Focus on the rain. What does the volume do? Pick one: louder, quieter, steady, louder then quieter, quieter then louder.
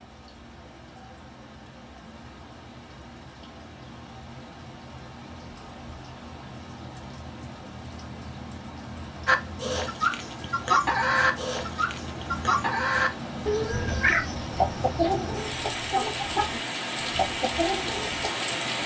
louder.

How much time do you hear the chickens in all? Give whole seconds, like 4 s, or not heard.
9 s.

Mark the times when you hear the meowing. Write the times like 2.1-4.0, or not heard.
13.7-14.2.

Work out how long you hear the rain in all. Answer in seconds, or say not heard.
19 s.